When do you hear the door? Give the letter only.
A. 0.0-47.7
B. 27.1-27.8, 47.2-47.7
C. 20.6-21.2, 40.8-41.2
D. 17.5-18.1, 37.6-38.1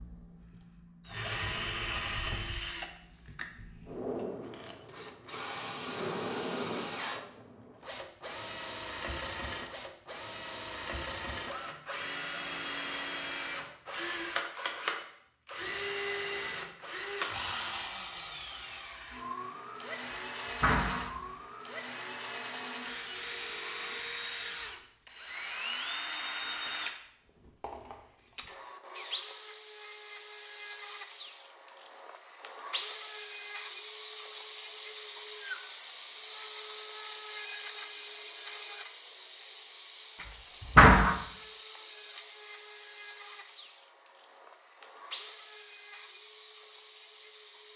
C.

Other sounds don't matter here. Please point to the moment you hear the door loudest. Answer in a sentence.
The volume of the door peaks at 41 seconds.